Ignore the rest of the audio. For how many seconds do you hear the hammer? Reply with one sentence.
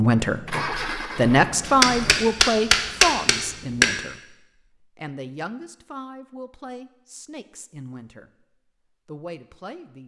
The hammer can be heard for 2 seconds in total.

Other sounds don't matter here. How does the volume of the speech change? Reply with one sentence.
The loudness of the speech goes down.